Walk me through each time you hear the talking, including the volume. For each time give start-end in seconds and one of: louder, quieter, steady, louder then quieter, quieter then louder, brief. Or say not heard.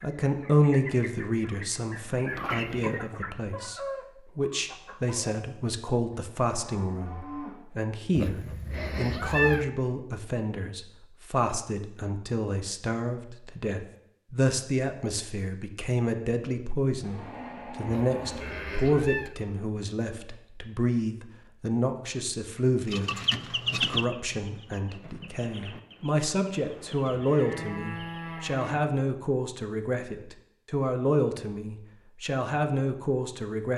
0.0-23.1 steady
23.7-33.7 louder.